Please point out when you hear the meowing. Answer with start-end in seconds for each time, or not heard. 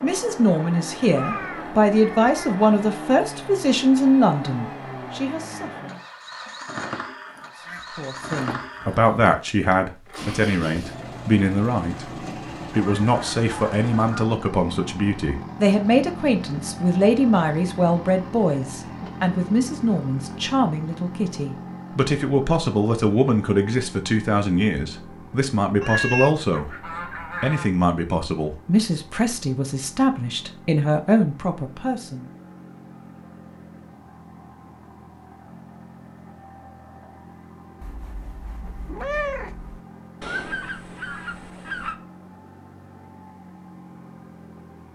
1.1-2.6, 25.8-26.4, 37.8-39.8.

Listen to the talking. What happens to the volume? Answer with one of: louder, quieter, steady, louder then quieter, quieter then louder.
steady.